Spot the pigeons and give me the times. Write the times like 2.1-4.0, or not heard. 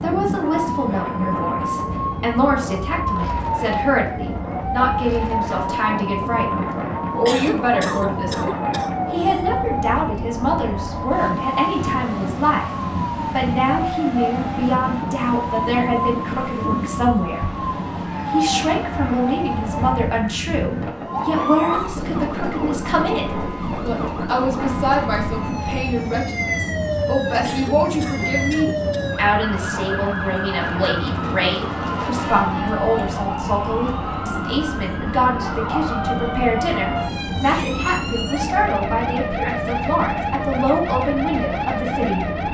not heard.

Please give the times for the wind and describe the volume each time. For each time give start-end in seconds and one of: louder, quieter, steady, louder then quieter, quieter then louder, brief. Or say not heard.
0.0-42.4 steady.